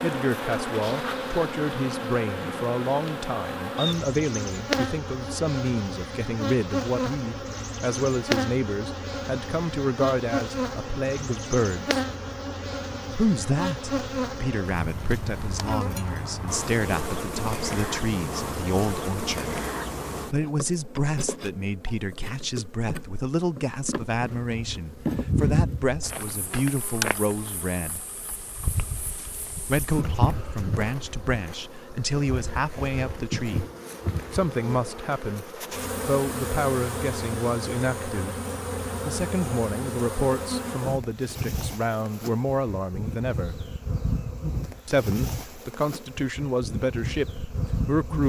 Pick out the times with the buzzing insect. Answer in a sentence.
The buzzing insect can be heard from 0.0 to 48.2 s.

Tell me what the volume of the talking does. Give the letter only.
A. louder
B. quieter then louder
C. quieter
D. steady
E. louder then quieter
D.